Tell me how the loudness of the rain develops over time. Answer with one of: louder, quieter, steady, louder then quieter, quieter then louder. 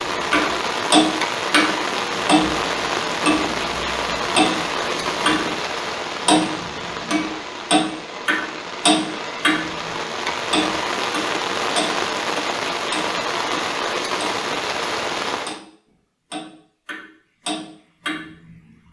quieter then louder.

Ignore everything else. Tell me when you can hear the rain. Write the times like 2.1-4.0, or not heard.
0.0-15.6.